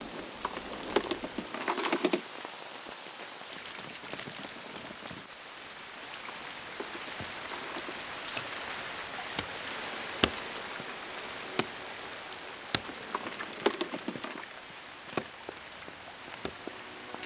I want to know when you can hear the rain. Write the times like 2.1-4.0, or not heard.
0.0-17.2.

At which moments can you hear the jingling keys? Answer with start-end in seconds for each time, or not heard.
0.1-2.2, 6.2-8.1, 12.8-14.4.